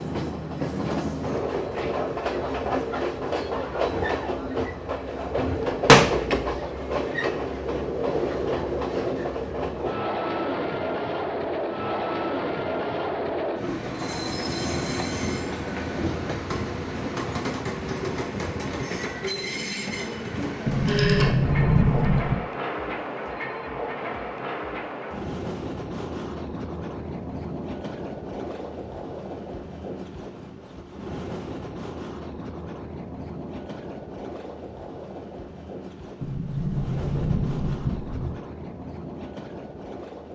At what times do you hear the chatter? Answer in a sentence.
The chatter can't be heard in this clip.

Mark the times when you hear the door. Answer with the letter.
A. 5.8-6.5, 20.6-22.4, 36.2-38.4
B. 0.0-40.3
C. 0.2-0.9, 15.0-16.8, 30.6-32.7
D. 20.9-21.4
A.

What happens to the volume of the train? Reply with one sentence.
The volume of the train goes down.